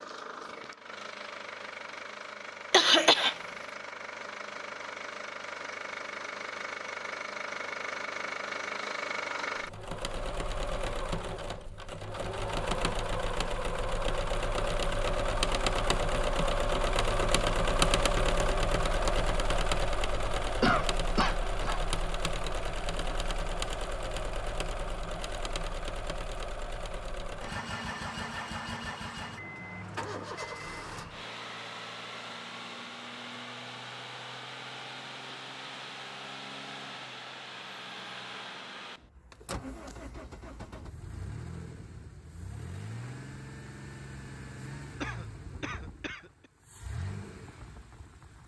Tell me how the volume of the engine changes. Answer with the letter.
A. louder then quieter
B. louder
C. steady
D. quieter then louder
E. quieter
A.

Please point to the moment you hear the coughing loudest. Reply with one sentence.
The volume of the coughing peaks at 3 seconds.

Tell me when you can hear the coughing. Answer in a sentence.
You can hear the coughing from 2.7 to 3.4 s, from 20.6 to 21.8 s and from 45.0 to 46.3 s.